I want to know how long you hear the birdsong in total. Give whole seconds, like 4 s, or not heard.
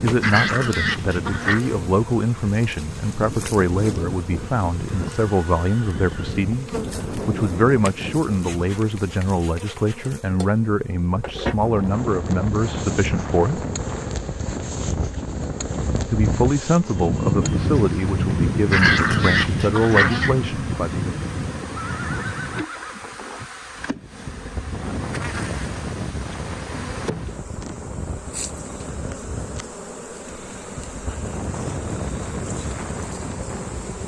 not heard.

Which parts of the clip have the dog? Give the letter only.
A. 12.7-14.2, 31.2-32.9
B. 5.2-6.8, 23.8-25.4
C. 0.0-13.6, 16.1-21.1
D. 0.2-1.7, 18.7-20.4
D.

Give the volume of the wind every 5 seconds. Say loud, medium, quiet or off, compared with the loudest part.
medium, medium, medium, loud, medium, medium, medium.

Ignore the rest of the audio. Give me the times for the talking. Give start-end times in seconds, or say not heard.
0.0-13.6, 16.1-21.1.